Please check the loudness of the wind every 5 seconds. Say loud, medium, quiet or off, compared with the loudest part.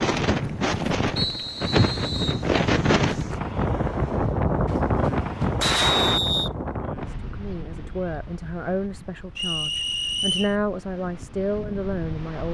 loud, medium, quiet.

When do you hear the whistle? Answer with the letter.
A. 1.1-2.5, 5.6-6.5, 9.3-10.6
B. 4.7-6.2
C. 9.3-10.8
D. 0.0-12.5
A.